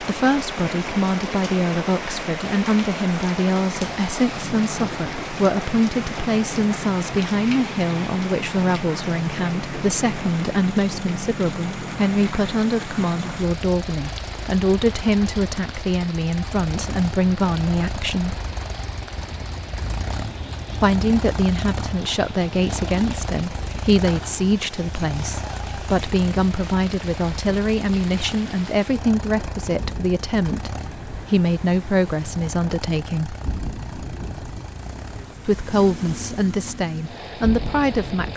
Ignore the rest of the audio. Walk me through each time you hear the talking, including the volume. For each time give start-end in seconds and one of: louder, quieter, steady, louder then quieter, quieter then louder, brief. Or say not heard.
0.0-18.4 steady
20.8-33.4 steady
35.5-38.3 brief.